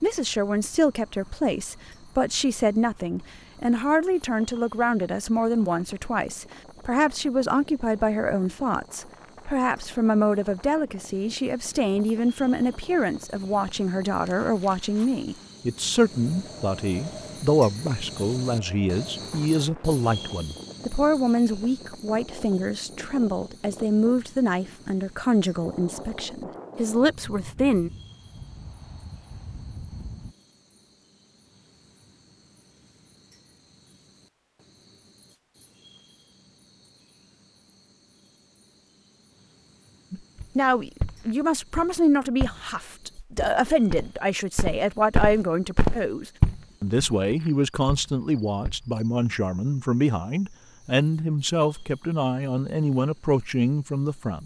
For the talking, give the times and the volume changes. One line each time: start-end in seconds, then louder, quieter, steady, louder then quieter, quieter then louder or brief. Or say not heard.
0.0-27.9 steady
40.1-54.4 steady.